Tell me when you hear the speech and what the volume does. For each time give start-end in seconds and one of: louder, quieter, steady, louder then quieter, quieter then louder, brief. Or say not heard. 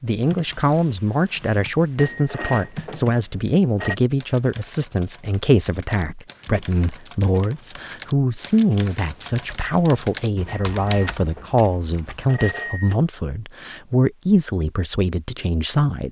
0.0-16.0 steady.